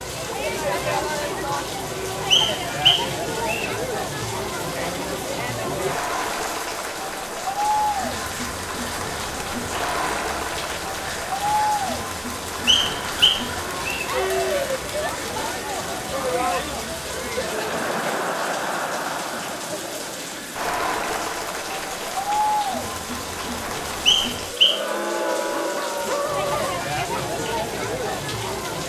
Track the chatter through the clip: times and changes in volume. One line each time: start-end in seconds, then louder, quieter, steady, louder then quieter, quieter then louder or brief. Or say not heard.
0.0-28.8 steady.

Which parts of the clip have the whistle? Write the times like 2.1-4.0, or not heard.
2.3-3.7, 12.7-14.1, 24.1-24.8.